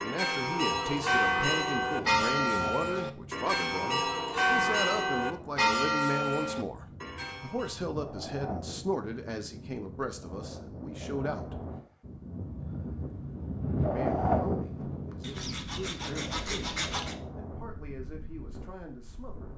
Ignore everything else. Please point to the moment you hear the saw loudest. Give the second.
17 s.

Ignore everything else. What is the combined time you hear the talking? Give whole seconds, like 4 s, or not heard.
17 s.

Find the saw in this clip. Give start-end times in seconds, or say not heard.
15.2-17.1.